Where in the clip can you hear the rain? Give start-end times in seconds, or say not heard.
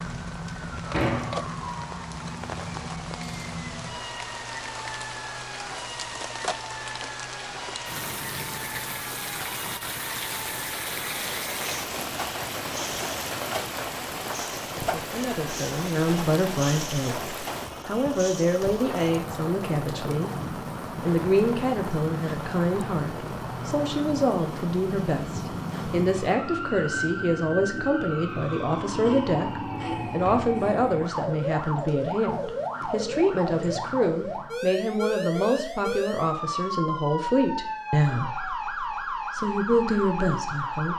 0.0-26.4.